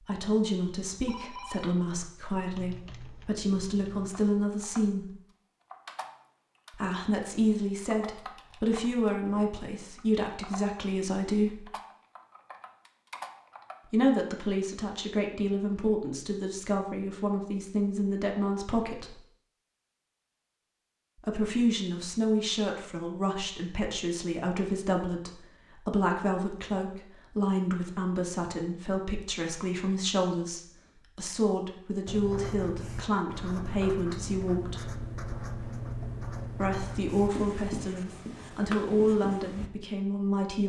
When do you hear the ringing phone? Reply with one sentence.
The ringing phone can be heard from 1.1 to 1.7 s.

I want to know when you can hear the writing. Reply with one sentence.
The writing can be heard from 32.0 to 39.7 s.